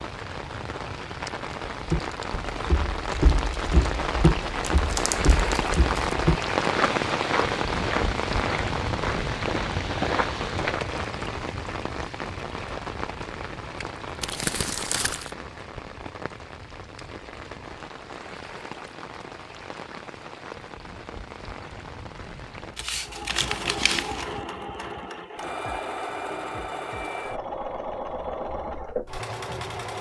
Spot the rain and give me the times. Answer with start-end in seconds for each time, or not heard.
0.0-22.8.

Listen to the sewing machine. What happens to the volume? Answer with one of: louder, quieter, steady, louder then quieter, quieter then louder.
steady.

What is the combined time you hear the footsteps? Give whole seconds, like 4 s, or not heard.
9 s.